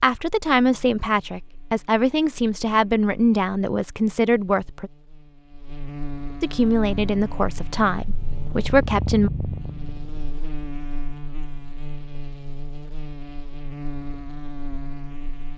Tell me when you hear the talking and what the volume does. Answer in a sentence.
The talking can be heard from 0.0 to 4.9 s, at a steady volume; and briefly from 6.4 to 9.3 s.